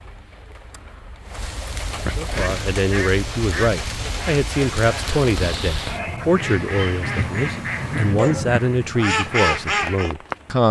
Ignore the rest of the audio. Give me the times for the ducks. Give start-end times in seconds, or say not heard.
2.3-10.2.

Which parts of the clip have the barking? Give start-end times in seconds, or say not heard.
7.2-8.7.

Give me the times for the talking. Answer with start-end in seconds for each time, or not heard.
2.1-10.6.